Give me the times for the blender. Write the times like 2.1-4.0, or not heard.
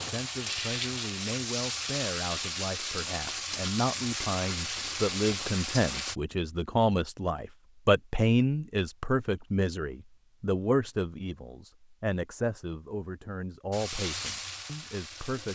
not heard.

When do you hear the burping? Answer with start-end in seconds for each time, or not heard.
not heard.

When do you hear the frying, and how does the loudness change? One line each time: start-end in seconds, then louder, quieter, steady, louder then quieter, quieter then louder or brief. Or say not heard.
0.0-6.2 steady
13.7-15.5 brief.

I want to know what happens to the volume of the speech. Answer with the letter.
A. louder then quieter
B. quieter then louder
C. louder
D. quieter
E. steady
A.